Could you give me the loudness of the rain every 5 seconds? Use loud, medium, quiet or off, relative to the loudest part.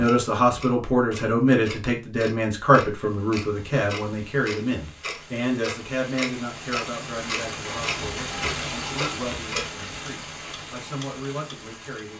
quiet, loud, medium.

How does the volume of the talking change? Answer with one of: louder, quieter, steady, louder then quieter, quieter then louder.
quieter.